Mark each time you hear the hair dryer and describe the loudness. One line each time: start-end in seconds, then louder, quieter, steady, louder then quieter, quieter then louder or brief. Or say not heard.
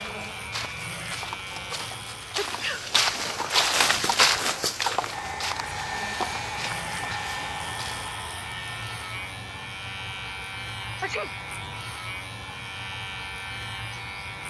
5.0-14.4 quieter.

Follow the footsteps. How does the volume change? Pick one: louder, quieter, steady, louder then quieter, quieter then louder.
louder then quieter.